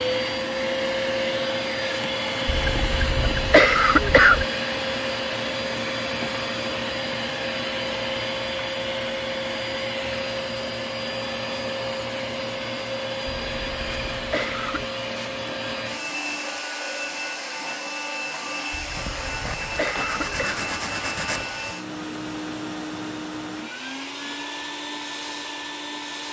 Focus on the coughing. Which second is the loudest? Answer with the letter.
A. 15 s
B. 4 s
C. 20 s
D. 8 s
B.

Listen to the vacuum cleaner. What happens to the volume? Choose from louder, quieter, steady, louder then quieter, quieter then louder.
quieter.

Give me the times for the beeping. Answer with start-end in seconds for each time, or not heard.
not heard.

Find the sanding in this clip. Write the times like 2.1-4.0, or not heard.
18.9-21.8.